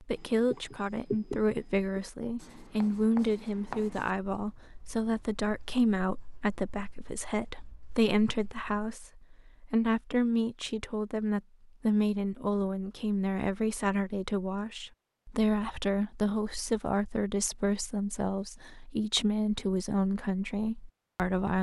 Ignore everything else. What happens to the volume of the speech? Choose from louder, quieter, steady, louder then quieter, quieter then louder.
steady.